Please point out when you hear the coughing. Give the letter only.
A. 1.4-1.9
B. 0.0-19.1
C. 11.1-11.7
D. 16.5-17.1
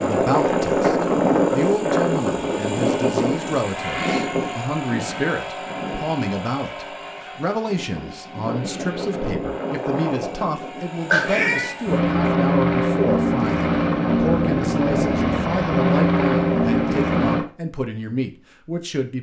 C.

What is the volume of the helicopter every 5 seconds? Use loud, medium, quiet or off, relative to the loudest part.
loud, medium, loud, loud.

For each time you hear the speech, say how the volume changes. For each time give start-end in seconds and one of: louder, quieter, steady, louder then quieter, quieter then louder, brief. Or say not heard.
0.0-19.1 steady.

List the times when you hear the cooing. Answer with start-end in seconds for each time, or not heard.
not heard.